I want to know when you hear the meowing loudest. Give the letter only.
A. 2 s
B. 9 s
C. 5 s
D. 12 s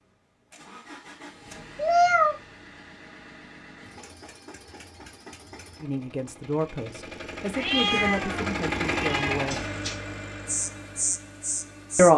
A.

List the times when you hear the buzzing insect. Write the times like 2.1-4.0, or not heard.
10.4-12.1.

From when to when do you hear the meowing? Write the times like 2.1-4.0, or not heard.
1.8-2.4, 7.5-10.0.